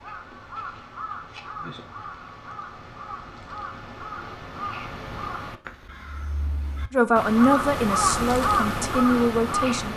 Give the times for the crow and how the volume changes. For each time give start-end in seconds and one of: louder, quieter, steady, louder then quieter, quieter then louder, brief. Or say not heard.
0.0-9.9 louder.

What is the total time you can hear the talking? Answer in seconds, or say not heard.
3 s.